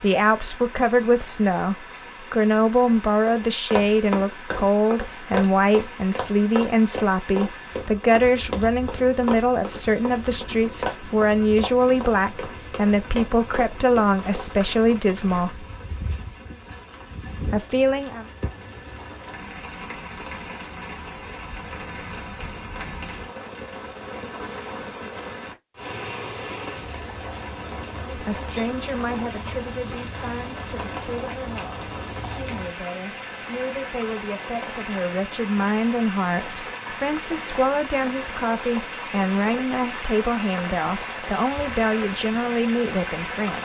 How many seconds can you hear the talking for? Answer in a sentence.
The talking can be heard for 32 seconds in total.